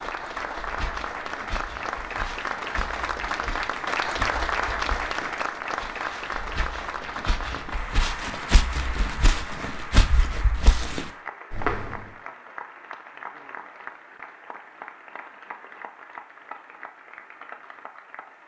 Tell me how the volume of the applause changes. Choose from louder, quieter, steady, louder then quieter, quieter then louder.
quieter.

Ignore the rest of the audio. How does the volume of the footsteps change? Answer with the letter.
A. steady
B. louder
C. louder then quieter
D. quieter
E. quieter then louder
B.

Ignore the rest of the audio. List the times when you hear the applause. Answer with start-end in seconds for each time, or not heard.
0.0-18.4.